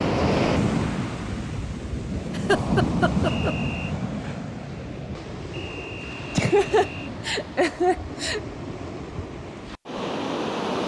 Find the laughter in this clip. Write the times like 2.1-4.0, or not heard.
2.4-3.5, 6.3-8.4.